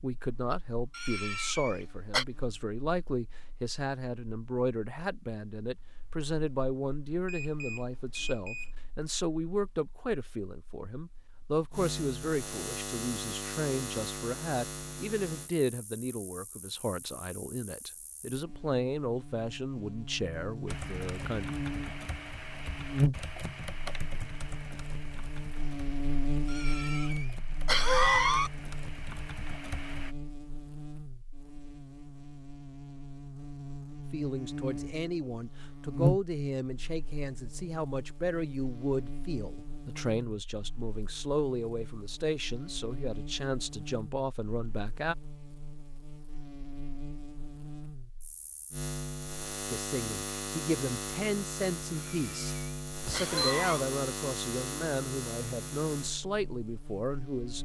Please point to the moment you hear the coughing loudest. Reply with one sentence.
The loudest moment of the coughing is at 28 seconds.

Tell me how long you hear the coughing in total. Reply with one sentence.
The coughing can be heard for 5 seconds in total.